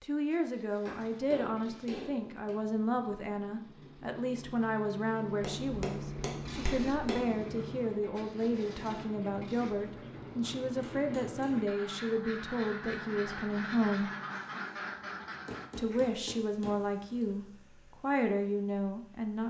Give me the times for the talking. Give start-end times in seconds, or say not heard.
0.0-14.1, 15.8-19.4.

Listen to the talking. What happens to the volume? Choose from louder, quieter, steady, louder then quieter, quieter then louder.
steady.